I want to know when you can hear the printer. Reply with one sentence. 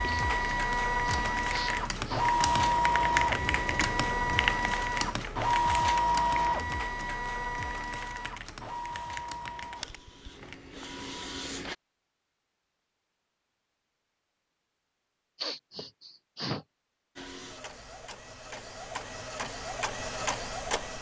You can hear the printer from 0.0 to 11.8 s and from 17.1 to 20.9 s.